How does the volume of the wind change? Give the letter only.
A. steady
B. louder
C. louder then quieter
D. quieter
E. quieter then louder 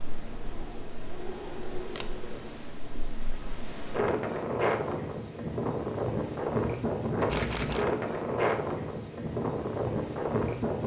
B.